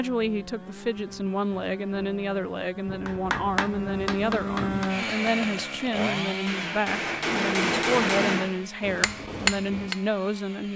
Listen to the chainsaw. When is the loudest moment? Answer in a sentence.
The volume of the chainsaw peaks at 5 seconds.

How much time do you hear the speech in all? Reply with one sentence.
You can hear the speech for 11 seconds altogether.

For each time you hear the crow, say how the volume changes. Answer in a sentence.
You can't hear the crow here.